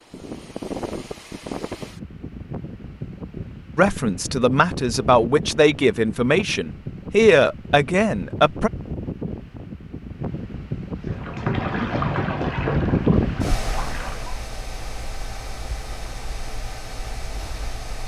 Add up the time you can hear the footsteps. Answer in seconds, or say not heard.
not heard.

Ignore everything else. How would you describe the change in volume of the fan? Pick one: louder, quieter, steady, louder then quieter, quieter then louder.
louder then quieter.